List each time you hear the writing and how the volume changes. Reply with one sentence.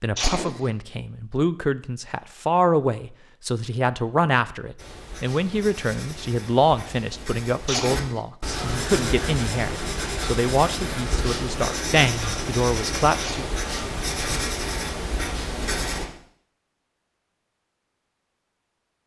You can hear the writing from 4.8 to 16.1 s, getting louder.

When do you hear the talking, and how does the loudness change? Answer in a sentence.
You can hear the talking from 0.0 to 13.4 s, at a steady volume.